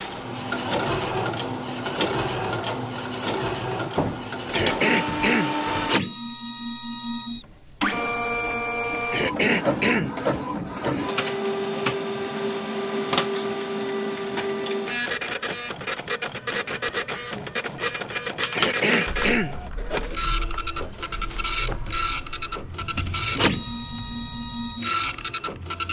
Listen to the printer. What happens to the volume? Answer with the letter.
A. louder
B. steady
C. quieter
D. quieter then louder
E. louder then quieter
B.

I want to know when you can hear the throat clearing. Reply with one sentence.
You can hear the throat clearing from 4.5 to 5.5 s, from 9.1 to 10.2 s and from 18.6 to 19.6 s.